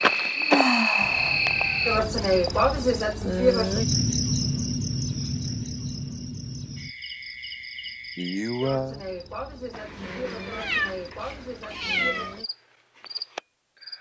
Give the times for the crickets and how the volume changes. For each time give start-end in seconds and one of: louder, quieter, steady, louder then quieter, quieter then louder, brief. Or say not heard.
0.0-13.9 quieter.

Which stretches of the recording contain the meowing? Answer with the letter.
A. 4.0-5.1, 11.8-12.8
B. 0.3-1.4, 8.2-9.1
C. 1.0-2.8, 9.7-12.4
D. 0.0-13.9
C.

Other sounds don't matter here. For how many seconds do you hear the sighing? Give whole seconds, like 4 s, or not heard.
2 s.